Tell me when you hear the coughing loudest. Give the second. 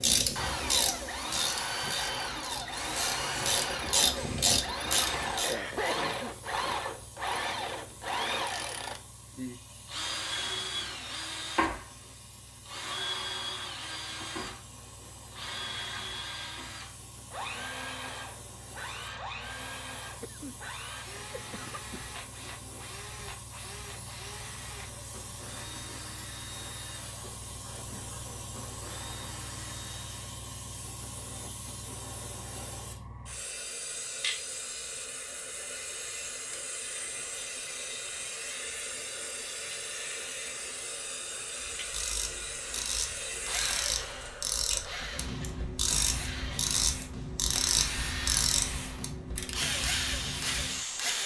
6 s.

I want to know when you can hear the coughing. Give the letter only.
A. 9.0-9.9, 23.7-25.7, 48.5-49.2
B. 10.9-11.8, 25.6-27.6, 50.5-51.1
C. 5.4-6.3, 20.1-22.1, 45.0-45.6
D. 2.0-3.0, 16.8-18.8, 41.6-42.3
C.